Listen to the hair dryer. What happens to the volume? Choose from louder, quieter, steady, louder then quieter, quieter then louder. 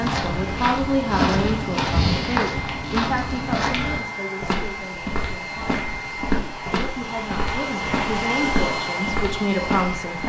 louder.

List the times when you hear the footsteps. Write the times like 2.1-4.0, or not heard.
0.0-10.2.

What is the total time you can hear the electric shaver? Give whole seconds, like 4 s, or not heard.
not heard.